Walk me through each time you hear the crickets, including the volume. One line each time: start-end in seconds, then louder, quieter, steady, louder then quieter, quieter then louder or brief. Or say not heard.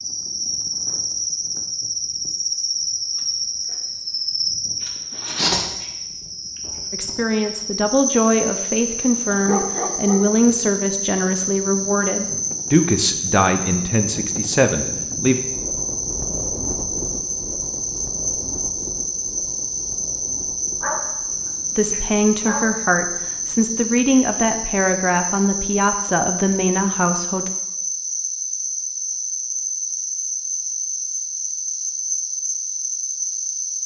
0.0-33.8 steady.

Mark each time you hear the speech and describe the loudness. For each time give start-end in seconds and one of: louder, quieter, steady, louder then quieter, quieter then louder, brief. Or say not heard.
6.9-15.4 steady
21.8-27.5 steady.